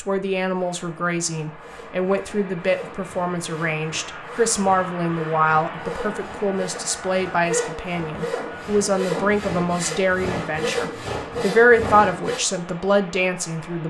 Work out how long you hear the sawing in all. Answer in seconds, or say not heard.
11 s.